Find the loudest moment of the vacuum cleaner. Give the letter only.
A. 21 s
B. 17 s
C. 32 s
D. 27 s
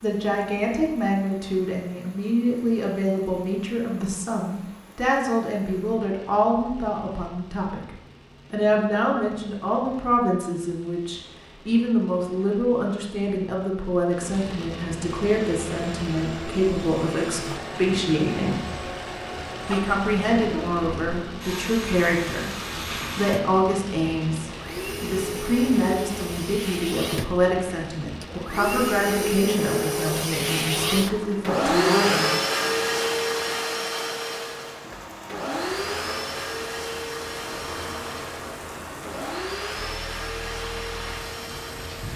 C.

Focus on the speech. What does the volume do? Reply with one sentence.
The volume of the speech stays about the same.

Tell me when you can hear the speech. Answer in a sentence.
You can hear the speech from 0.0 to 7.9 s, from 8.5 to 18.6 s and from 19.6 to 32.3 s.